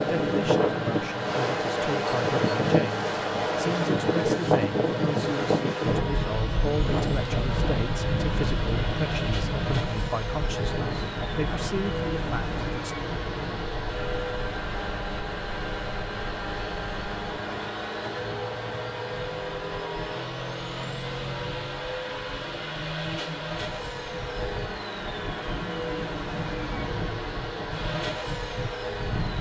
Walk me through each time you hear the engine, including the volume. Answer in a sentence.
You can hear the engine from 0.0 to 29.3 s, at a steady volume.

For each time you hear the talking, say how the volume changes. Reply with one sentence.
The talking can be heard from 0.0 to 12.9 s, at a steady volume.